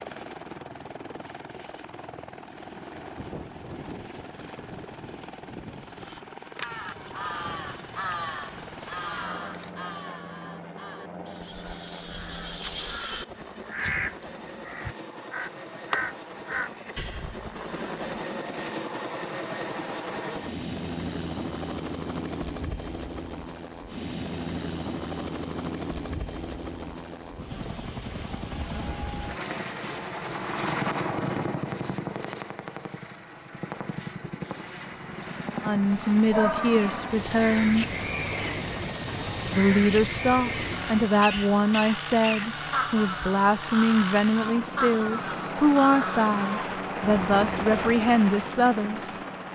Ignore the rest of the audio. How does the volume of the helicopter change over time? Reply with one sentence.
The loudness of the helicopter goes up.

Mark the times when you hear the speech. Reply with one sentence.
The speech can be heard from 35.6 to 38.0 s and from 39.5 to 49.1 s.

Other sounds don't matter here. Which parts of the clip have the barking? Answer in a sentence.
You can hear the barking from 36.2 to 37.0 s.